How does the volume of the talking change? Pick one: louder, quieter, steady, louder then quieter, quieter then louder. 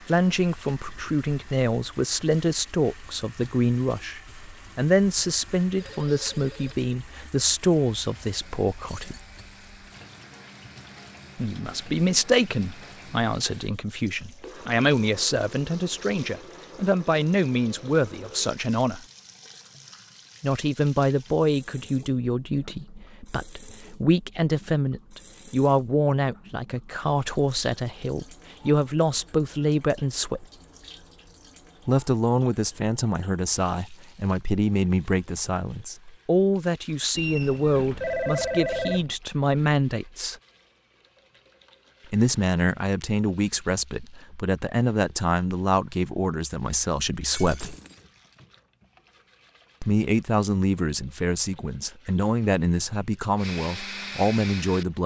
steady.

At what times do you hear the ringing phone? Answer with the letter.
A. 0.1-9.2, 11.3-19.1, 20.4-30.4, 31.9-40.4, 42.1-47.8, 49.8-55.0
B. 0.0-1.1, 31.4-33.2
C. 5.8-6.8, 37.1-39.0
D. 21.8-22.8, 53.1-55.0
C.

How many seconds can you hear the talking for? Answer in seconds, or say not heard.
46 s.